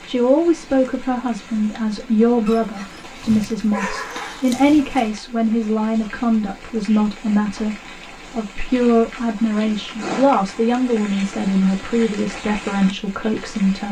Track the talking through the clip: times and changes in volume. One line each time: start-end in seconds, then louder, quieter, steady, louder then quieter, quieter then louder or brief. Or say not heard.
0.1-13.8 steady.